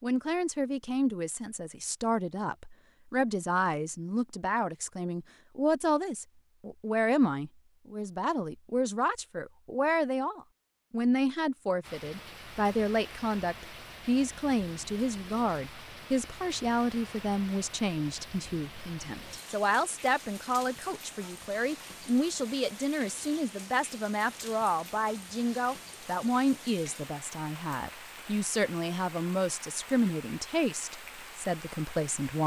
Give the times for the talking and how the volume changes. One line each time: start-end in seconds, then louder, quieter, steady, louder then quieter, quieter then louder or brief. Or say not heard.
0.0-32.4 steady.